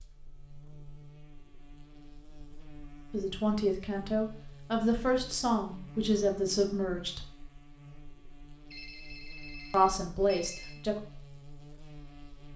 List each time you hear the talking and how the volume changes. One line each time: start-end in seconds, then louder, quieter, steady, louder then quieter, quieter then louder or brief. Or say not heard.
3.1-7.3 steady
9.7-10.9 brief.